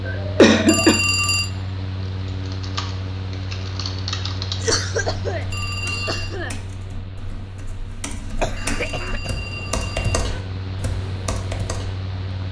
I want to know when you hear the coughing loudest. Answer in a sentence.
The loudest moment of the coughing is at 1 second.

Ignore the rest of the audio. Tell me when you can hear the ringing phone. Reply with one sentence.
You can hear the ringing phone from 0.7 to 1.5 s, from 5.5 to 6.3 s and from 8.6 to 10.2 s.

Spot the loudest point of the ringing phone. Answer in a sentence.
The volume of the ringing phone peaks at 1 second.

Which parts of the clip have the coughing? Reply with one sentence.
You can hear the coughing from 0.1 to 1.0 s, from 4.6 to 6.5 s and from 8.4 to 9.3 s.